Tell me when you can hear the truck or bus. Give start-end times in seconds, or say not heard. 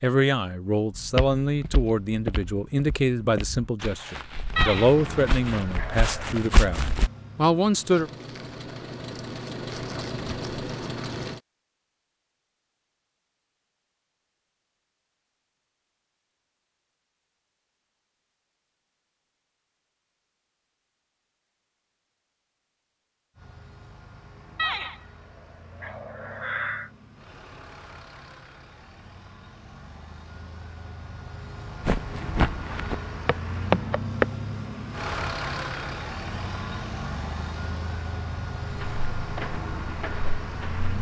4.5-11.4, 23.4-40.9.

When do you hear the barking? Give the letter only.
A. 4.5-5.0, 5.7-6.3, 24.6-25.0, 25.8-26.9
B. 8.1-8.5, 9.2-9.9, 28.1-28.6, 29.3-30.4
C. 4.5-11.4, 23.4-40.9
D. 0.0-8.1
A.